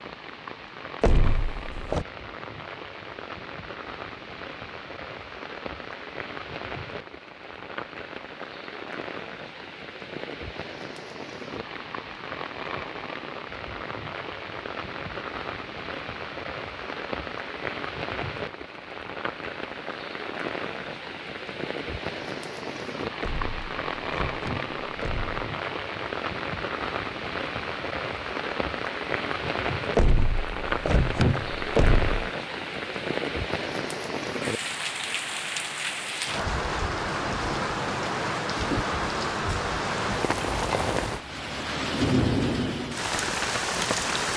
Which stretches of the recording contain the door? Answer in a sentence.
The door can be heard from 1.0 to 2.0 s, from 23.2 to 25.4 s and from 29.9 to 32.2 s.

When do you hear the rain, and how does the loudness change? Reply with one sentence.
The rain can be heard from 0.0 to 44.3 s, getting louder.